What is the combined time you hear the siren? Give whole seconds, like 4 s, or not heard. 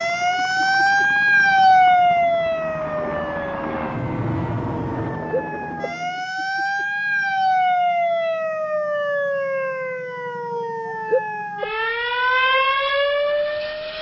14 s.